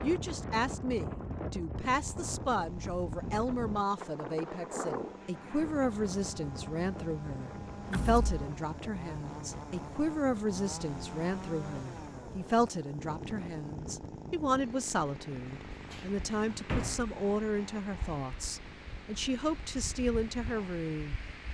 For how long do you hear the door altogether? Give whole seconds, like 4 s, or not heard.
2 s.